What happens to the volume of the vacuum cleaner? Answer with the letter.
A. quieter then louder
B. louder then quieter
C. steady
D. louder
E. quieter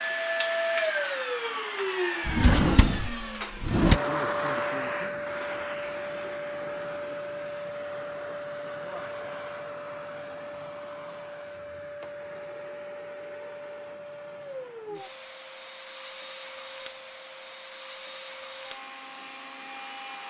E.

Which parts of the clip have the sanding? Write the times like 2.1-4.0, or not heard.
not heard.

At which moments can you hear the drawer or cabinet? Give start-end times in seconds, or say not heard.
2.2-4.0.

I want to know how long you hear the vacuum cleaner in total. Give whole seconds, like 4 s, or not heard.
20 s.